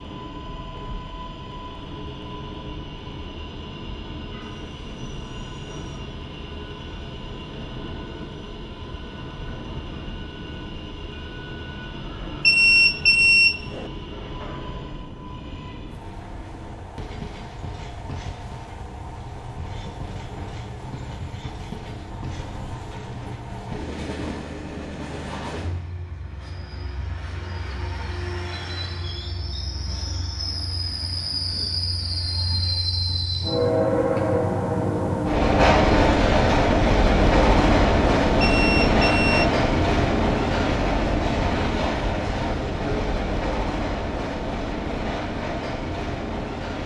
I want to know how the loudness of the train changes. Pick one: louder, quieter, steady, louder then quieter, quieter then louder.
louder.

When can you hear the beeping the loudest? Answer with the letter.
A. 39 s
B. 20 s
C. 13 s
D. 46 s
C.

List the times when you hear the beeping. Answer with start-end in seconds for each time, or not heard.
12.4-13.9, 38.4-39.5.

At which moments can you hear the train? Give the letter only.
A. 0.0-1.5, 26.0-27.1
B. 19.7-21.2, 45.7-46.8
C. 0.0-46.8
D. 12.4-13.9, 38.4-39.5
C.